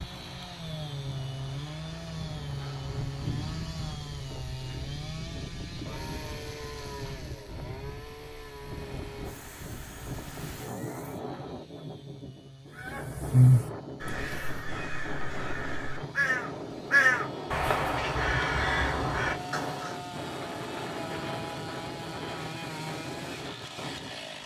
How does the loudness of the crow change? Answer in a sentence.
The loudness of the crow goes down, then up.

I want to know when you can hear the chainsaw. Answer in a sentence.
The chainsaw can be heard from 0.0 to 24.4 s.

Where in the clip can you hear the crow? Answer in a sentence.
You can hear the crow from 12.8 to 19.9 s.